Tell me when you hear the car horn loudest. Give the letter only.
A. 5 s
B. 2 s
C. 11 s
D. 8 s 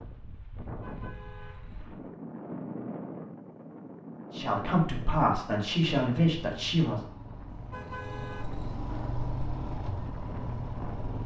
D.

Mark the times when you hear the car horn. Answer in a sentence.
The car horn can be heard from 0.7 to 2.1 s and from 7.5 to 8.8 s.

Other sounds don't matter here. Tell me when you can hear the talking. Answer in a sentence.
You can hear the talking from 4.3 to 7.0 s.